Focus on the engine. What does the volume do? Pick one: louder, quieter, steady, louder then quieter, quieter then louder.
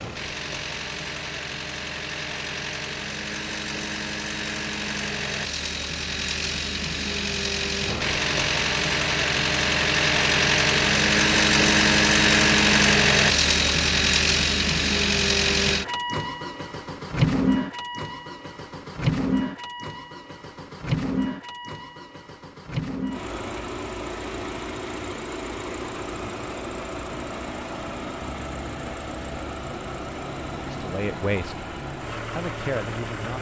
louder then quieter.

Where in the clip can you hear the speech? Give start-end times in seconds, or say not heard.
30.8-31.6, 32.4-33.3.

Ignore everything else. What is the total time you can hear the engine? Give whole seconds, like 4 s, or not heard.
33 s.